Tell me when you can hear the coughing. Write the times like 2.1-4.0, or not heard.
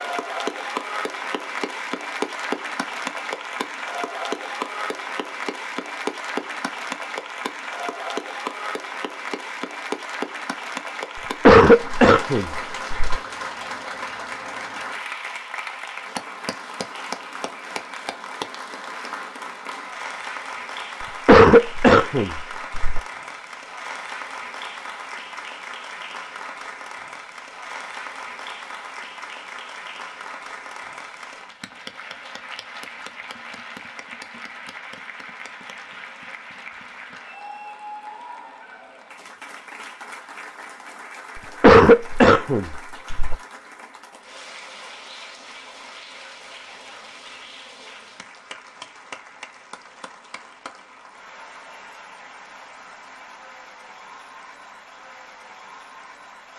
11.2-13.2, 21.0-23.0, 41.4-43.4.